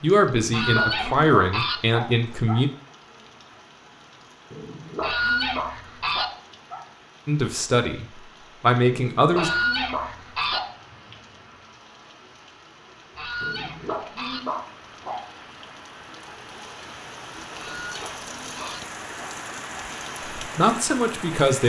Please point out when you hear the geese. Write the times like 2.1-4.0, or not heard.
0.5-1.8, 5.0-6.2, 9.3-10.6, 13.2-14.4, 17.6-18.8.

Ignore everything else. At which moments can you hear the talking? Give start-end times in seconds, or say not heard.
0.0-2.7, 7.2-9.5, 20.4-21.6.